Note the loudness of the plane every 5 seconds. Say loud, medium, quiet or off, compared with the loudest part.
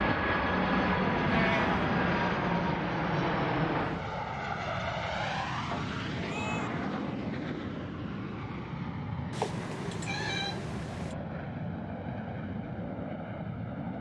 loud, medium, medium.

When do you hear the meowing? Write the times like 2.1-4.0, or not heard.
1.2-1.9, 5.7-6.7, 9.3-11.2.